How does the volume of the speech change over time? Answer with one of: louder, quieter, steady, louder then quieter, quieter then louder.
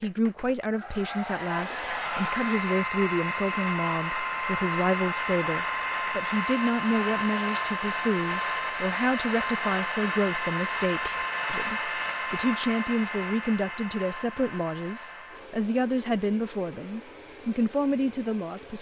steady.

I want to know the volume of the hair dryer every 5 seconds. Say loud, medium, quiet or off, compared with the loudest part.
loud, loud, loud, quiet.